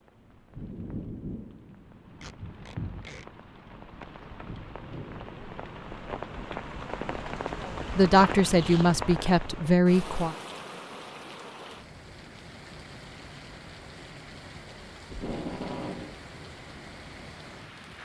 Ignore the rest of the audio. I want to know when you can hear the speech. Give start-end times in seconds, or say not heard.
8.0-10.3.